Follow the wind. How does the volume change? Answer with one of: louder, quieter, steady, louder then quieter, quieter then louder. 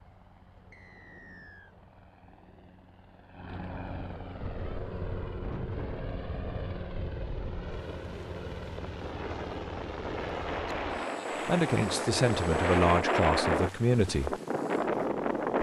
quieter then louder.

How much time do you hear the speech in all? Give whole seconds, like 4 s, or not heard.
3 s.